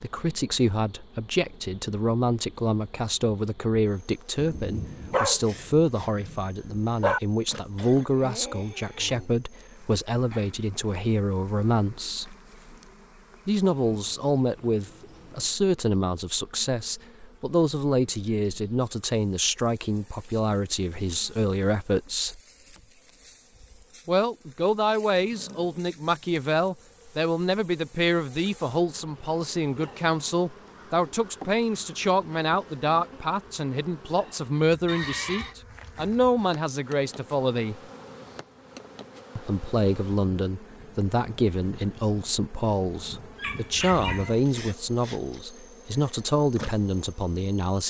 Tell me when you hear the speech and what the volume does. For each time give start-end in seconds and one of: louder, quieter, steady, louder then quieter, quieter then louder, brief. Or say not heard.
0.0-12.3 steady
13.4-22.4 steady
24.1-37.8 steady
39.4-47.8 steady.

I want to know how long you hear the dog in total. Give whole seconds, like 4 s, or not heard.
4 s.